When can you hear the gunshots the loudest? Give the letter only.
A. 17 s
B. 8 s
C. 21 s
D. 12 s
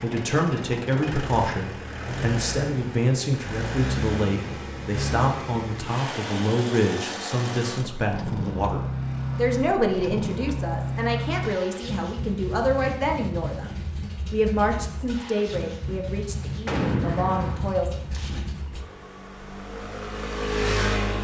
A.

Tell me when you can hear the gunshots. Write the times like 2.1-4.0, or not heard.
16.6-18.4.